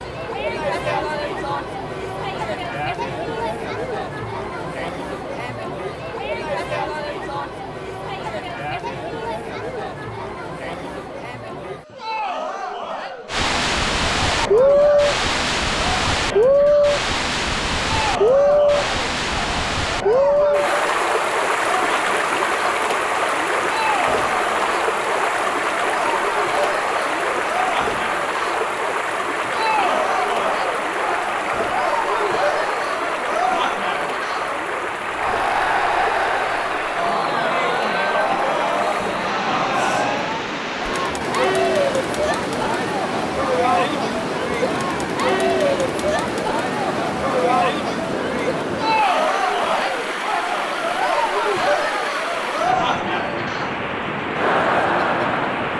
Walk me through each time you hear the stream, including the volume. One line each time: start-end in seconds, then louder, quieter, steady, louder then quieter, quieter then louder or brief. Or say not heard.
13.2-55.7 quieter.